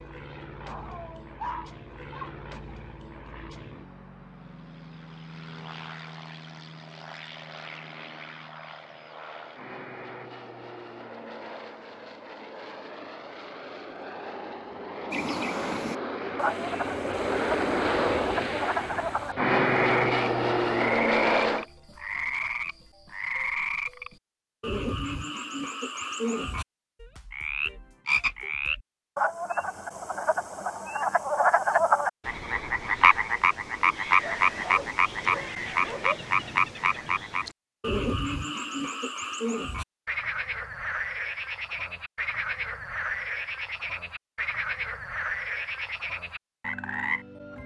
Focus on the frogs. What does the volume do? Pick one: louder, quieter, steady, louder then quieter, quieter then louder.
louder then quieter.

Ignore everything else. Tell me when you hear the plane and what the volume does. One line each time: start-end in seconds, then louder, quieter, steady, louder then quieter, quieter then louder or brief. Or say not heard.
0.0-21.6 louder.